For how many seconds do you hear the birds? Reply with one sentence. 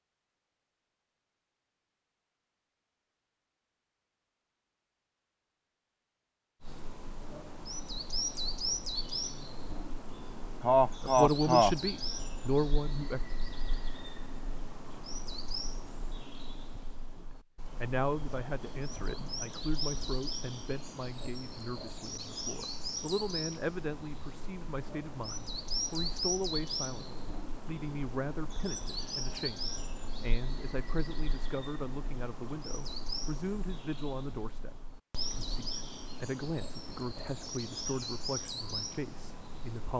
The birds can be heard for 33 seconds in total.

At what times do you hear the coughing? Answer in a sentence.
You can hear the coughing from 10.6 to 11.8 s.